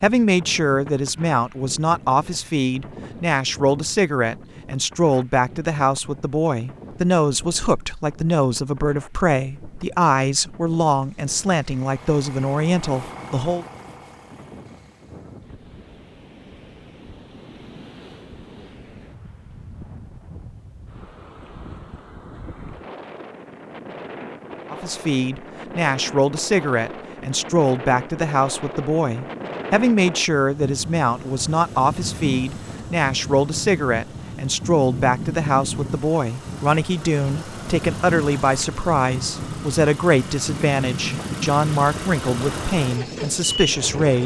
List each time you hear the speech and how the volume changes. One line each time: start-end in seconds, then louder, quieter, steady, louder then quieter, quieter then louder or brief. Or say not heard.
0.0-13.7 steady
24.7-44.2 steady.